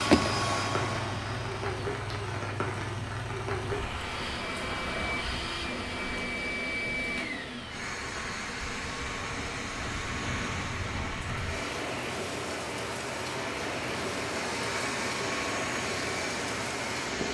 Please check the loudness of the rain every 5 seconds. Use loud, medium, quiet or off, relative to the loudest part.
loud, medium, loud, loud.